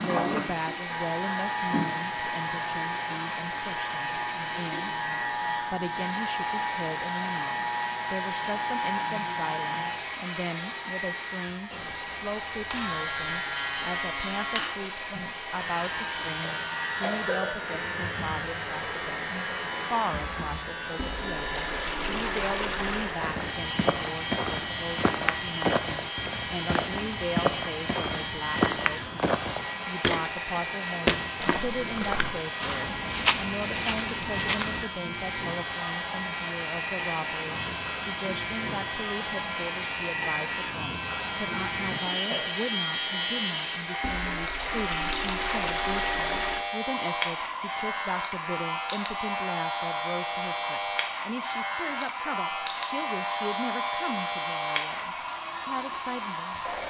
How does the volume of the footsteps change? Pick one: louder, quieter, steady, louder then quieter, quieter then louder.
steady.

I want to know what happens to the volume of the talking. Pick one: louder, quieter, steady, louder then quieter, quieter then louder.
steady.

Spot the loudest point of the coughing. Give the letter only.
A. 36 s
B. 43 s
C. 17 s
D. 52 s
C.